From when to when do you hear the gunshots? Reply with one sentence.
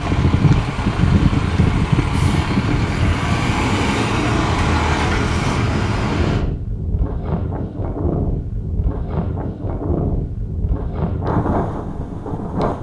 You can't hear the gunshots here.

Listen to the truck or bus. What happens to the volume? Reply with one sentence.
The loudness of the truck or bus goes up.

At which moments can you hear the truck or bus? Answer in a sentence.
You can hear the truck or bus from 0.0 to 6.5 s.